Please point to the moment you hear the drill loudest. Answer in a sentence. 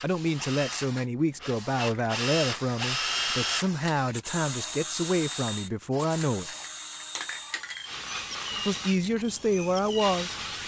The volume of the drill peaks at 3 seconds.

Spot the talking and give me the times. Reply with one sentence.
The talking can be heard from 0.0 to 6.5 s and from 8.7 to 10.3 s.